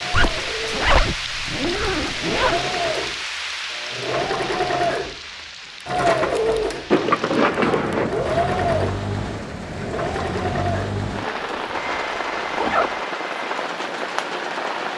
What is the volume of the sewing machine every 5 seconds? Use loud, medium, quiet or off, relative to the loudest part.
loud, loud, medium.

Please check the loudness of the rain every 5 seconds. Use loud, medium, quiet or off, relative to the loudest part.
loud, medium, loud.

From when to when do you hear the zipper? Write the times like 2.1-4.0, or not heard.
0.1-2.6, 6.9-8.2, 11.4-13.1.